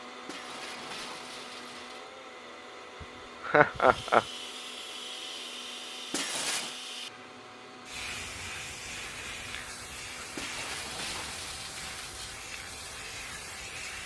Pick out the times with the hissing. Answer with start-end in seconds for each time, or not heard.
3.7-14.0.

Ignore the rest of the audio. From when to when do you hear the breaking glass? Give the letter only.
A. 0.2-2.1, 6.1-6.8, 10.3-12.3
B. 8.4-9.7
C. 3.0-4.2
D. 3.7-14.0
A.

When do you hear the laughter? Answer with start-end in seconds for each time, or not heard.
3.0-4.2.